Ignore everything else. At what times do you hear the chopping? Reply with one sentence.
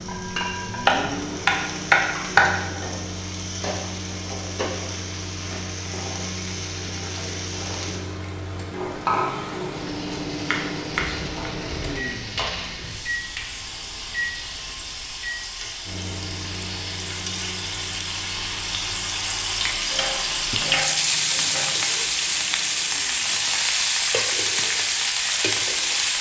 The chopping can be heard from 0.8 to 2.5 s, from 10.1 to 11.5 s and from 19.9 to 21.8 s.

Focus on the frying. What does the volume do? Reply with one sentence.
The loudness of the frying goes up.